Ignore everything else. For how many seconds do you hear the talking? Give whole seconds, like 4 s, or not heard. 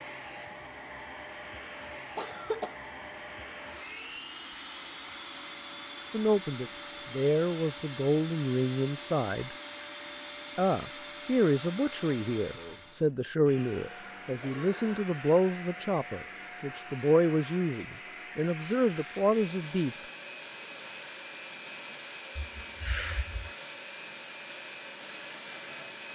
13 s.